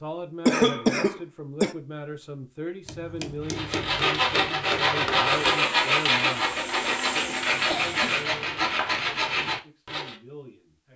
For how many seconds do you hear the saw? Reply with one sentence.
You can hear the saw for 7 seconds altogether.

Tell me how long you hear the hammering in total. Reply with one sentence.
You can hear the hammering for 3 seconds altogether.